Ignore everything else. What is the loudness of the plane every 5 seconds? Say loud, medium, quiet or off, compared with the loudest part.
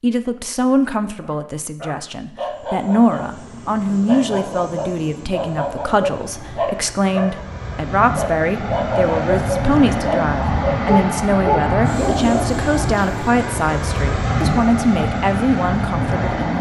quiet, medium, loud, loud.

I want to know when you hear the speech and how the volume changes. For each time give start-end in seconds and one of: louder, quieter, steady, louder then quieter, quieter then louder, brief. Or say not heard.
0.0-16.5 steady.